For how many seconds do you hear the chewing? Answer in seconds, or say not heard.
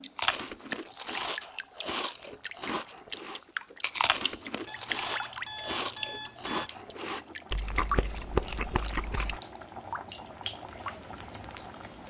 9 s.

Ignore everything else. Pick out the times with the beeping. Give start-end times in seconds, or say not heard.
4.7-6.7.